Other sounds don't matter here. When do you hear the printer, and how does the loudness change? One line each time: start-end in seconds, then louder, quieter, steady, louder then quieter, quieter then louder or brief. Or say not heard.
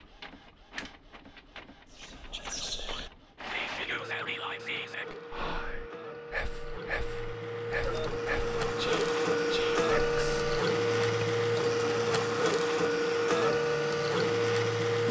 0.0-15.0 louder.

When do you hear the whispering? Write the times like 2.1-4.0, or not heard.
1.9-11.3.